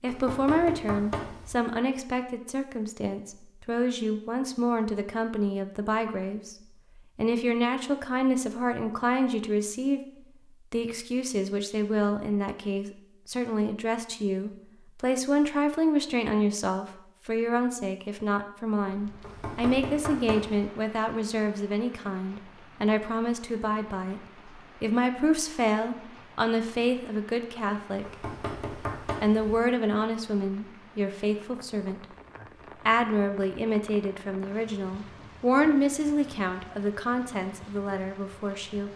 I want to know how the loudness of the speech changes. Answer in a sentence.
The volume of the speech stays about the same.